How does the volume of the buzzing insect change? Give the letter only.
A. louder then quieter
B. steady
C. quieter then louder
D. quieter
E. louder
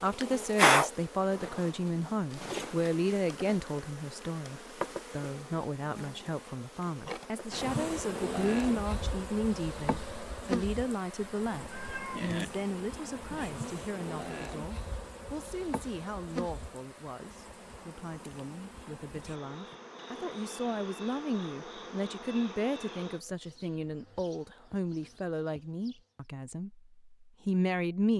D.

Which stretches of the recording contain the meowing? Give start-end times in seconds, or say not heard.
11.7-12.5.